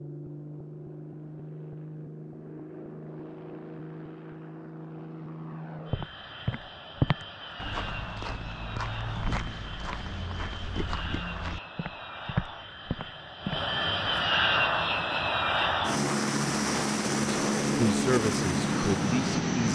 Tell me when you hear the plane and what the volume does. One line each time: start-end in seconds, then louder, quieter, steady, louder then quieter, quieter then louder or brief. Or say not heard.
0.0-19.7 louder.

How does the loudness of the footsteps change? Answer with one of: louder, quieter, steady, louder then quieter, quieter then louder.
quieter then louder.